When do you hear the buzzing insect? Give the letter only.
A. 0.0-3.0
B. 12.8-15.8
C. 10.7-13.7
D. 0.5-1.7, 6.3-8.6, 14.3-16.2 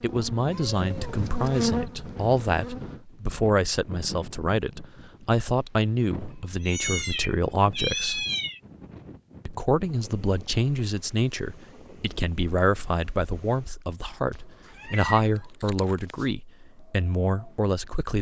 A.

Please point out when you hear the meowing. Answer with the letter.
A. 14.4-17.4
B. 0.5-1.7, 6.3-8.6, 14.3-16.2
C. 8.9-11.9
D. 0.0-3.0
B.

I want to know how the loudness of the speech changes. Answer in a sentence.
The loudness of the speech stays about the same.